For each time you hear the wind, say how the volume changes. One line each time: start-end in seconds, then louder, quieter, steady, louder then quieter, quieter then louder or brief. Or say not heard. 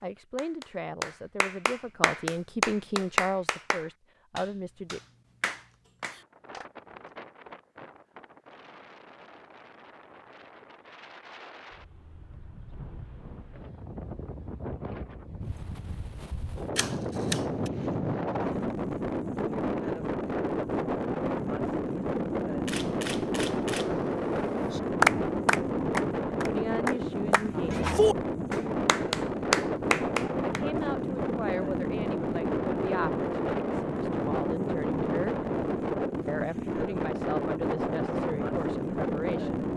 6.1-39.7 louder.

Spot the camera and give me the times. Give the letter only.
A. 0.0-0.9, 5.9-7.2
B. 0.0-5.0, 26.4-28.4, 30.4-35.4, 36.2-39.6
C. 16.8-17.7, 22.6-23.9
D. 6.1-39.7
C.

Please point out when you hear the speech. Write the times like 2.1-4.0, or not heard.
0.0-5.0, 26.4-28.4, 30.4-35.4, 36.2-39.6.